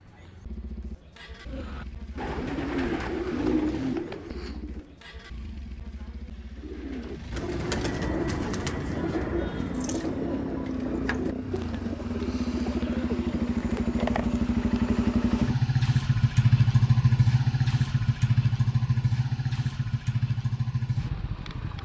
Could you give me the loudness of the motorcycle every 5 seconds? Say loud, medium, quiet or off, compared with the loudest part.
quiet, quiet, medium, loud, medium.